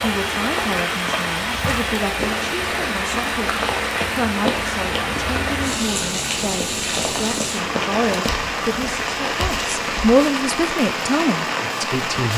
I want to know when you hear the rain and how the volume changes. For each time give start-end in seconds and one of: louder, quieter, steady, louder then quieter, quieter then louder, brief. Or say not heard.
0.0-12.3 steady.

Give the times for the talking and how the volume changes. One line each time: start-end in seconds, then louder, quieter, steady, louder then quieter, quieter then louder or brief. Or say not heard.
0.0-12.3 louder.